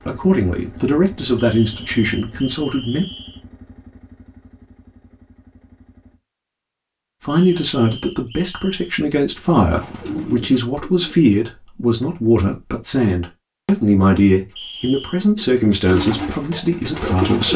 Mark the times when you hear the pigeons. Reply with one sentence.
You can hear the pigeons from 9.3 to 11.2 s and from 14.3 to 17.5 s.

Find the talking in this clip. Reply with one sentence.
You can hear the talking from 0.1 to 3.0 s and from 7.2 to 17.5 s.